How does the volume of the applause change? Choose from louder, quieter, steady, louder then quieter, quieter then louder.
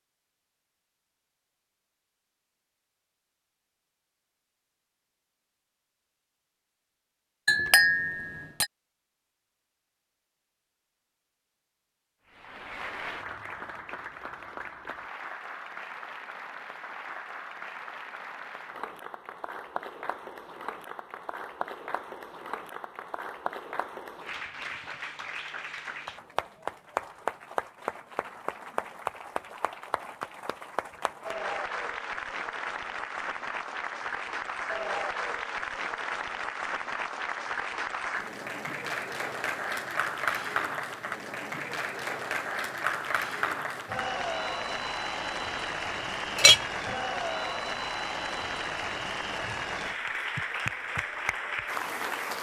louder.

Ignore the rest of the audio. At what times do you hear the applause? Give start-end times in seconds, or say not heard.
12.2-52.3.